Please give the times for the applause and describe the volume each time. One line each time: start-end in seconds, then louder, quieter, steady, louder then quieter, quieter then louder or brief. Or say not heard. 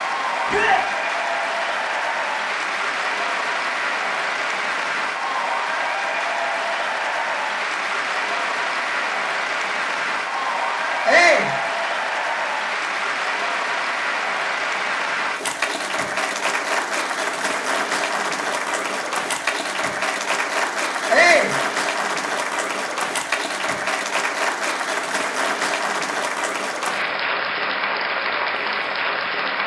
0.0-29.6 steady.